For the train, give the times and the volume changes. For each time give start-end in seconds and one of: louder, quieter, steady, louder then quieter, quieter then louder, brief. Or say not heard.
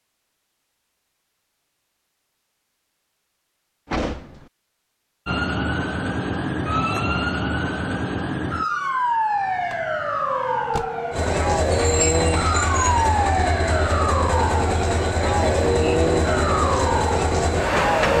11.1-18.1 steady.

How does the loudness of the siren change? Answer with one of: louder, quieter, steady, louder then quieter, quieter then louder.
steady.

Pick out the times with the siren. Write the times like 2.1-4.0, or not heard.
5.2-18.1.